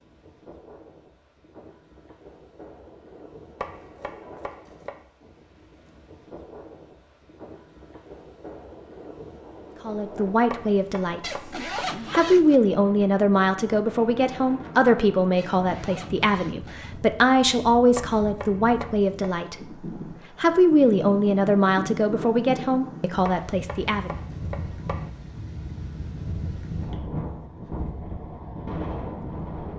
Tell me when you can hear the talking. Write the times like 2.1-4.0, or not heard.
9.8-11.5, 12.1-19.6, 20.4-24.1.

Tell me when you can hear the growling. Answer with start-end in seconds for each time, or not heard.
not heard.